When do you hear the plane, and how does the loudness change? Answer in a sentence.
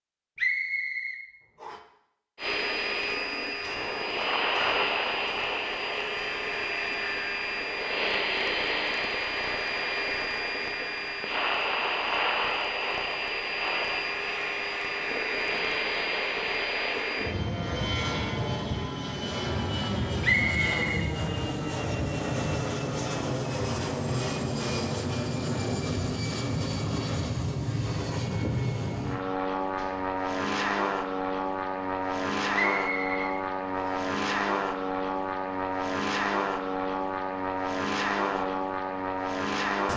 You can hear the plane from 2.4 to 39.9 s, at a steady volume.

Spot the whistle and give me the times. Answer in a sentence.
The whistle can be heard from 0.3 to 1.8 s, from 20.2 to 21.1 s and from 32.5 to 34.0 s.